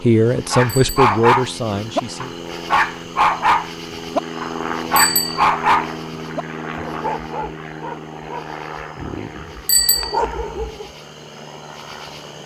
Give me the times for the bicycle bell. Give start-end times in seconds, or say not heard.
0.7-1.1, 5.0-5.5, 9.7-10.2.